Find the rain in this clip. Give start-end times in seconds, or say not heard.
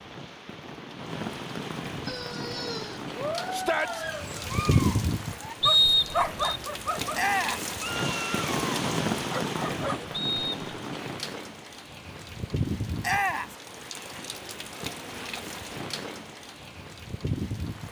0.0-17.8.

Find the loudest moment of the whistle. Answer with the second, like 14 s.
6 s.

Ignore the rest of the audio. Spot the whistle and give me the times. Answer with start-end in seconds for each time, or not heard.
5.6-6.6, 10.1-10.6.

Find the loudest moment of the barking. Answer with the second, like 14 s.
6 s.